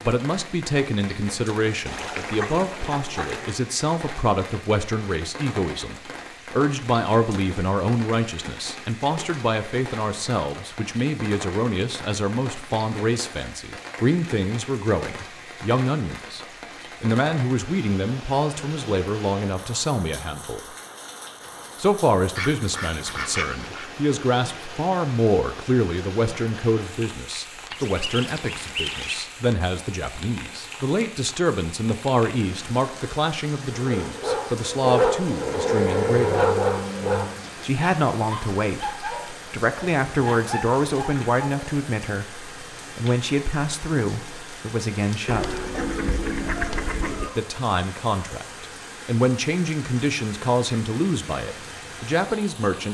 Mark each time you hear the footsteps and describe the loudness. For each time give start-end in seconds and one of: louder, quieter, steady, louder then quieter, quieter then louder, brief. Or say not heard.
not heard.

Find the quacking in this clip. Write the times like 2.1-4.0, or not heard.
1.9-3.5, 22.4-23.9, 27.7-29.2, 45.2-47.3.